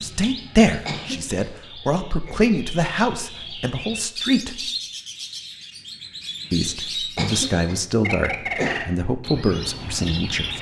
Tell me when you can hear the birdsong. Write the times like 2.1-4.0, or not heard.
0.0-10.5.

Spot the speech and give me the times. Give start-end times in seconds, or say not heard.
0.0-4.7, 6.5-10.5.